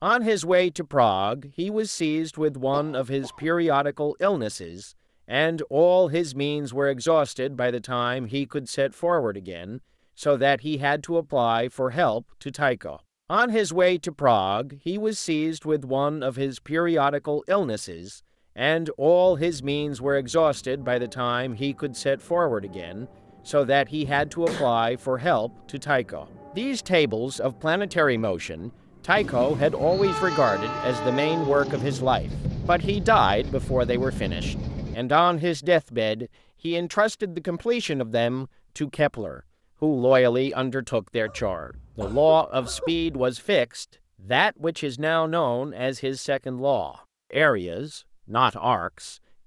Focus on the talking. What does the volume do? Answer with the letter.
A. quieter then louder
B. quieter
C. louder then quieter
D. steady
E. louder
D.